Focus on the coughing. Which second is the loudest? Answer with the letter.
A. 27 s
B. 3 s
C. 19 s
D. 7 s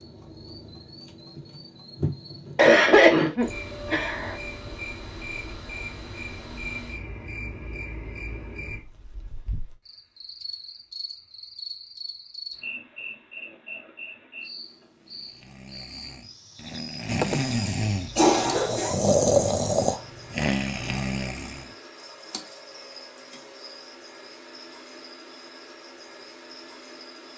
B.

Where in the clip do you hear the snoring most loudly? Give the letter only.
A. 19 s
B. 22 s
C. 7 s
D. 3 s
A.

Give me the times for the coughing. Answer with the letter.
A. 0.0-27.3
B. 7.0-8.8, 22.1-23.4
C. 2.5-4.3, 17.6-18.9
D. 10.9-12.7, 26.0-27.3
C.